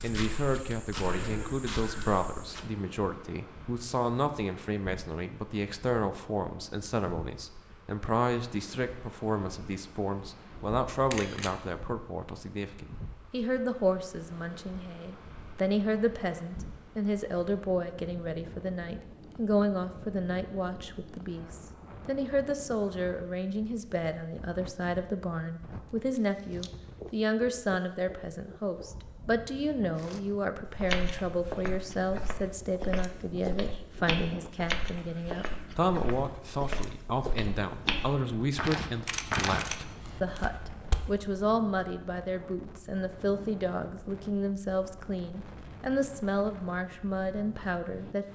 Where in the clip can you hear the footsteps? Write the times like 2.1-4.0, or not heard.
0.0-2.7, 29.9-41.1.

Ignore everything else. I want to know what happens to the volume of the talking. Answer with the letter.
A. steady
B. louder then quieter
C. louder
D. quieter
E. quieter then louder
A.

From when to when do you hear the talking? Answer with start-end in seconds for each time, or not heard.
0.0-48.3.